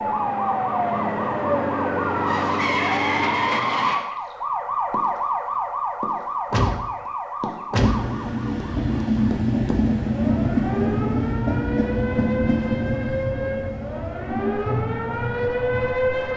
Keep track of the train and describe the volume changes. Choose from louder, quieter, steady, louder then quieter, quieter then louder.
quieter.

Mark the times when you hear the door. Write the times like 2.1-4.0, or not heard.
not heard.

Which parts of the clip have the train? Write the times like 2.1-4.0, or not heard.
7.8-16.3.